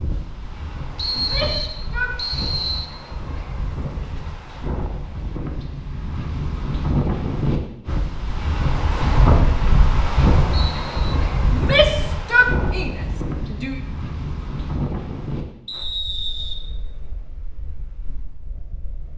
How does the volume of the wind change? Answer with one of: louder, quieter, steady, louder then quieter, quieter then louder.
louder then quieter.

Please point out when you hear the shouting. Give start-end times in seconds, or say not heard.
1.1-2.1, 11.5-13.8.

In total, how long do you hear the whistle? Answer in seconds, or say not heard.
4 s.